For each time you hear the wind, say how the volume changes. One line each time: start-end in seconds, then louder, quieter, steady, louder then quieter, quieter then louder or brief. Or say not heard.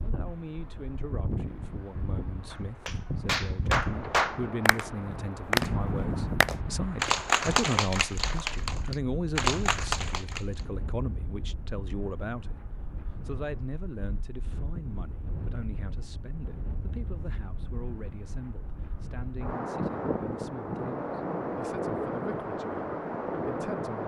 0.0-24.0 quieter then louder.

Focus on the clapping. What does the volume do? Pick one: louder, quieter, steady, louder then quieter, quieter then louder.
steady.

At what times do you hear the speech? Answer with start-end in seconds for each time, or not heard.
0.0-24.0.